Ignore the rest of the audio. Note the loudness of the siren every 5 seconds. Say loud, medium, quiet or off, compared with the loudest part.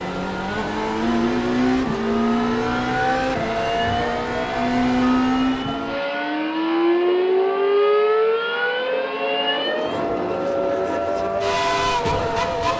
medium, loud, medium.